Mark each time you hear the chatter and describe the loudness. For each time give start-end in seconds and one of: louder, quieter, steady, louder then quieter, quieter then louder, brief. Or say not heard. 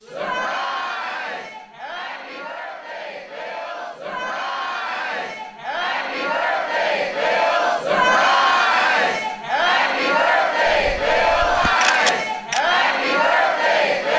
0.0-14.1 louder.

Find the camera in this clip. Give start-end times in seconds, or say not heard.
10.7-12.6.